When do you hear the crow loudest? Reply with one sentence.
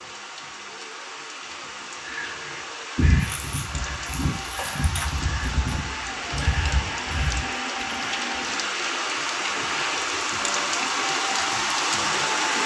The volume of the crow peaks at 3 seconds.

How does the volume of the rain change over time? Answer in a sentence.
The loudness of the rain goes up.